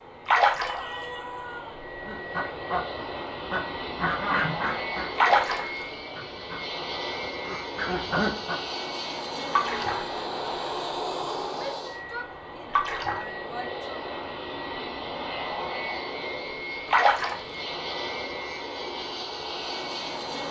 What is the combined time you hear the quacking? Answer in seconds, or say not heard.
7 s.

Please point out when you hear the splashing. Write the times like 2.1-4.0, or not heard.
0.2-1.1, 5.2-6.0, 9.5-10.1, 12.7-13.2, 16.9-17.7.